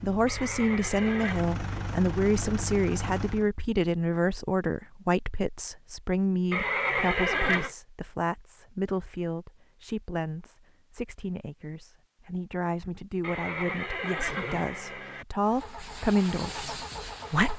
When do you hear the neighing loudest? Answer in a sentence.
The volume of the neighing peaks at 7 seconds.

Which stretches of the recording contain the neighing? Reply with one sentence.
The neighing can be heard from 0.2 to 1.4 s, from 6.5 to 7.7 s and from 13.2 to 15.2 s.